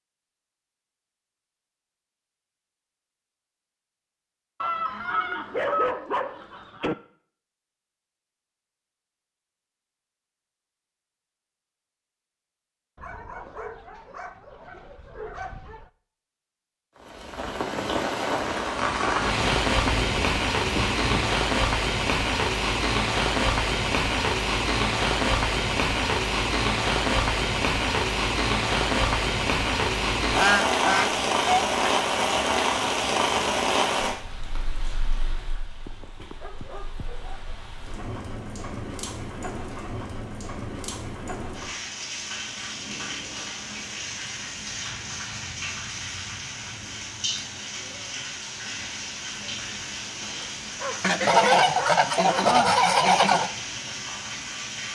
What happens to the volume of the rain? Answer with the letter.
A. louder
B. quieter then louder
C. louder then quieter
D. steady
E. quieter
E.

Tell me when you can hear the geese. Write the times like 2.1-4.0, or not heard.
4.6-7.0, 19.4-21.4, 30.3-32.0, 51.0-53.5.